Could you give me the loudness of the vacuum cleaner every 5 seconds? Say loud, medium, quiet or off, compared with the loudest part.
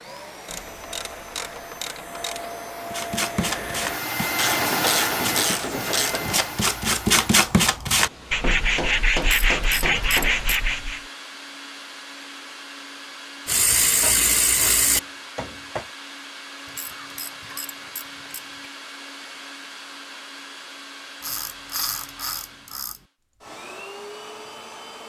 loud, loud, medium, medium, medium.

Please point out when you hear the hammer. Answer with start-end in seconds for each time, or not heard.
8.1-10.5, 14.0-15.9.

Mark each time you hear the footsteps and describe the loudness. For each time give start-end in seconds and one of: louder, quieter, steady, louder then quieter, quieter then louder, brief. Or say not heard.
not heard.